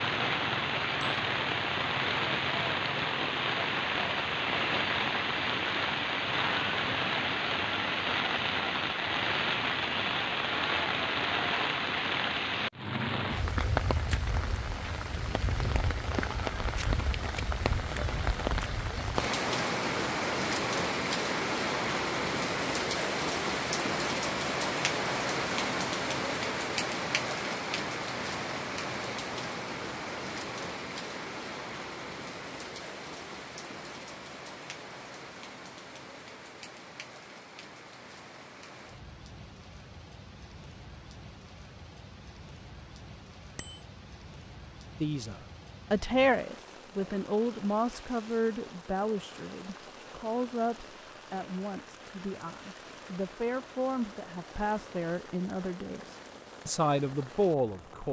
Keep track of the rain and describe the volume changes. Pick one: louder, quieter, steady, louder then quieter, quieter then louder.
quieter.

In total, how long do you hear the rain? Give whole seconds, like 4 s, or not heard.
58 s.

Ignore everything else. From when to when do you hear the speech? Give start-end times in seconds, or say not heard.
45.0-58.0.